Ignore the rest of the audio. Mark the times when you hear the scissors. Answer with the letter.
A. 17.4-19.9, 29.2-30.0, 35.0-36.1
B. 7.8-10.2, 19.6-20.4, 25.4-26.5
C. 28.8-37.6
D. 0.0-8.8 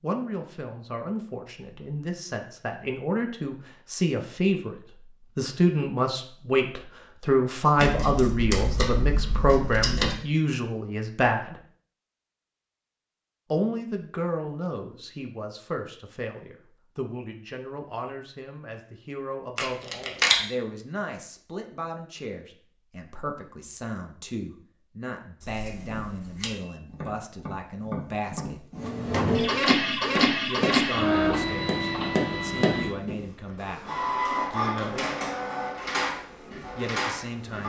B.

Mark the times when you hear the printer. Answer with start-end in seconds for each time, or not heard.
28.8-37.6.